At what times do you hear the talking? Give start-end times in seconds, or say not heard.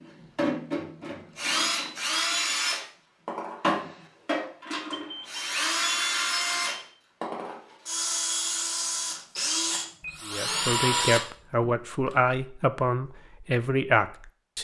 10.2-14.5.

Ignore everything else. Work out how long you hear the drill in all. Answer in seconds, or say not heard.
12 s.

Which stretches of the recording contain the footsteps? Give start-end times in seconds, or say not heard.
not heard.